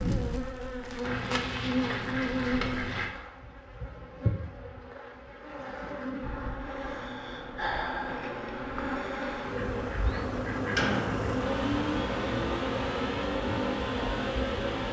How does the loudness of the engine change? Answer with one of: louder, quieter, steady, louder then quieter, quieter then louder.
louder.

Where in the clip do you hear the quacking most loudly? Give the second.
11 s.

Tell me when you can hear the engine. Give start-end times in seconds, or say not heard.
8.1-14.8.